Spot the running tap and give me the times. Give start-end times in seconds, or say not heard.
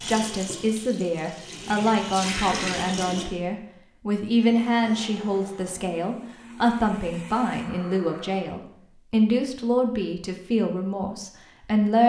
0.0-3.2.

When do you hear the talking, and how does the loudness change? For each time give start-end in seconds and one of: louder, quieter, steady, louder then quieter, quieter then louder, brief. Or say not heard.
0.0-12.0 steady.